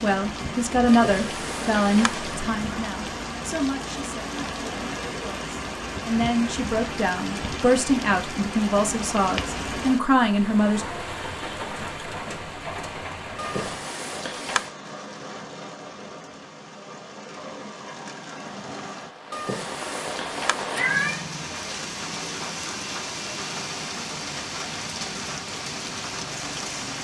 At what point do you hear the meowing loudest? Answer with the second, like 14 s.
21 s.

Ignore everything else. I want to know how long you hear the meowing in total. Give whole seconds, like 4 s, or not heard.
5 s.